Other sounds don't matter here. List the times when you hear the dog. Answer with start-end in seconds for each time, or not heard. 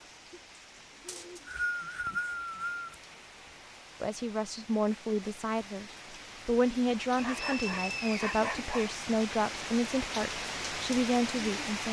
7.2-8.9.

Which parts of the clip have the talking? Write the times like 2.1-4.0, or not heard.
4.0-11.8.